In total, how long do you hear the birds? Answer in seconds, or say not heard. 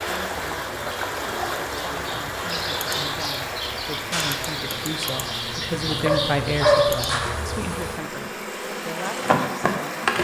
7 s.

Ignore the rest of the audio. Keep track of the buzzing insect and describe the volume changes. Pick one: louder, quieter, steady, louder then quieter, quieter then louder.
louder.